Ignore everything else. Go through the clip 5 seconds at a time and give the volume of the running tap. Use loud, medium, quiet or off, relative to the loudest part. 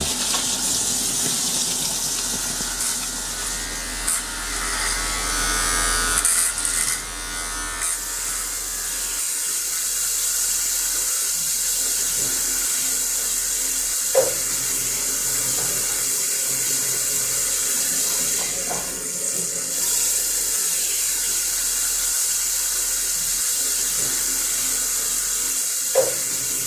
loud, medium, loud, loud, loud, loud.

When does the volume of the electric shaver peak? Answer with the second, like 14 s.
6 s.